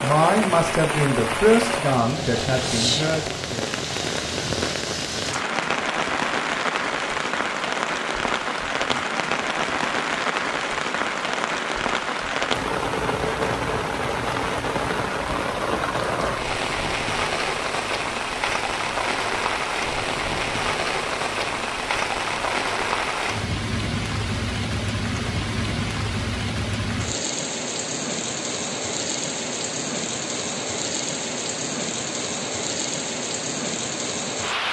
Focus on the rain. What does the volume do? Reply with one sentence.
The loudness of the rain stays about the same.